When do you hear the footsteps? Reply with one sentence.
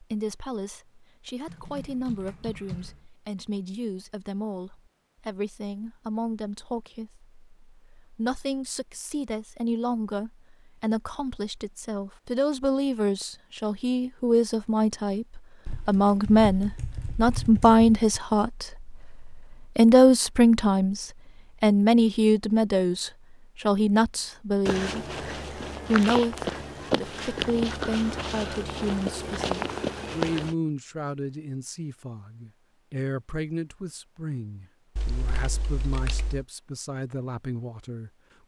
You can hear the footsteps from 24.6 to 30.6 s.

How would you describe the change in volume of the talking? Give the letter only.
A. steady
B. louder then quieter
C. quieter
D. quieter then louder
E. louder
B.